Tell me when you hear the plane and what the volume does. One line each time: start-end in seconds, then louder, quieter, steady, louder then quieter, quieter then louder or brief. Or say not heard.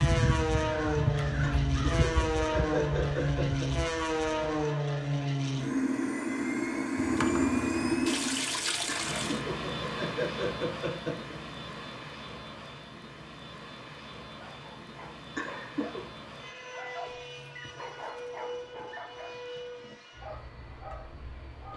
0.0-21.7 quieter.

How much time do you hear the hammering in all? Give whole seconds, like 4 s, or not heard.
not heard.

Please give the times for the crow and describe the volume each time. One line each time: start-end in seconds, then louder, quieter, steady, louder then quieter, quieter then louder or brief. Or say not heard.
0.0-4.7 quieter.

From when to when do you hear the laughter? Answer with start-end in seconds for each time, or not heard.
1.6-3.7, 8.8-11.3, 15.3-16.1.